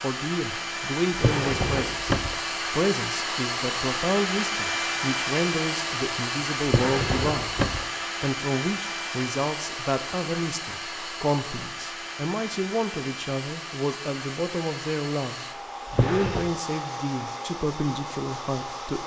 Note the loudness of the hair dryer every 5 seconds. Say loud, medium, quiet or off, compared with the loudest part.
loud, loud, medium, medium.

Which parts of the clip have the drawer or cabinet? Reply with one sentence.
You can hear the drawer or cabinet from 1.1 to 2.4 s, from 6.7 to 7.8 s and from 15.9 to 16.5 s.